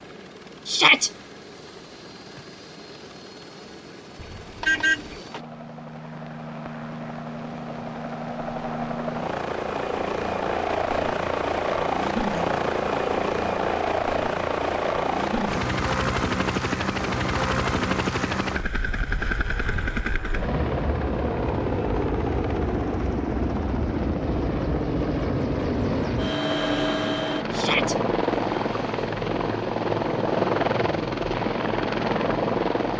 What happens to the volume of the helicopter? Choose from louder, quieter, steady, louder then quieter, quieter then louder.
louder.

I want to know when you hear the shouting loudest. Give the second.
1 s.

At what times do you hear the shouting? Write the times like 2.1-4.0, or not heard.
0.7-1.1, 27.5-27.9.